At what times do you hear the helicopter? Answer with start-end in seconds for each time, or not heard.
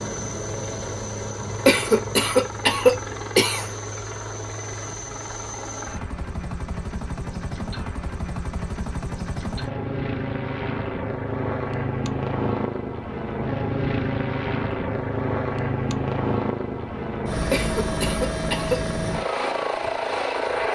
0.0-20.7.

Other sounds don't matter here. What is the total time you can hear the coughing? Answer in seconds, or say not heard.
3 s.